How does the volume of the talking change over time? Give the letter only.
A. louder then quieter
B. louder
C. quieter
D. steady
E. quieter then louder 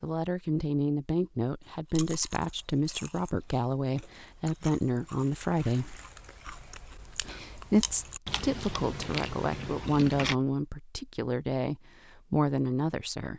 D.